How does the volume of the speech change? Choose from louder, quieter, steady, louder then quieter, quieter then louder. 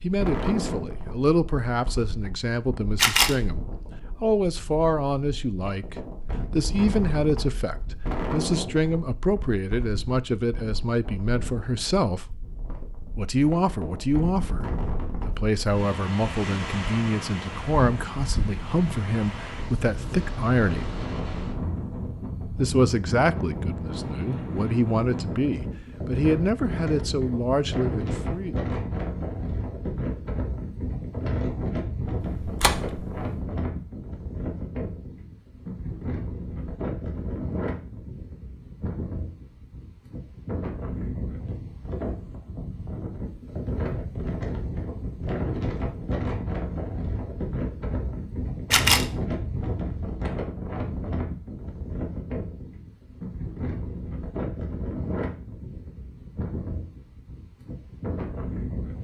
steady.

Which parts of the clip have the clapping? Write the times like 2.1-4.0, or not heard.
not heard.